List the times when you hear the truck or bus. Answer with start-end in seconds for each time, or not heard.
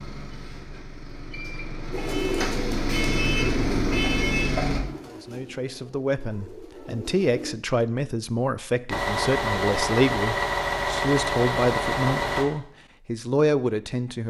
0.0-4.8, 8.9-12.4.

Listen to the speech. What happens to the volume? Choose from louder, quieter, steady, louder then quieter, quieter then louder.
louder.